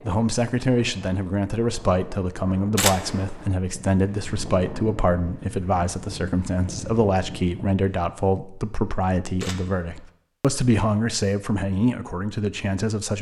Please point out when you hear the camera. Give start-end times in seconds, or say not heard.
2.8-3.5, 9.4-10.1.